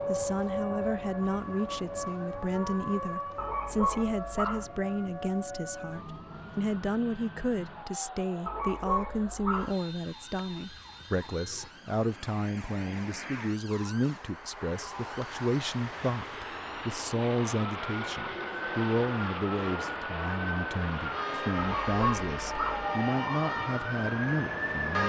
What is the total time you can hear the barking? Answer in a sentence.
The barking can be heard for 4 seconds in total.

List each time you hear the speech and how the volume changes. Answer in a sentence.
The speech can be heard from 0.1 to 25.0 s, at a steady volume.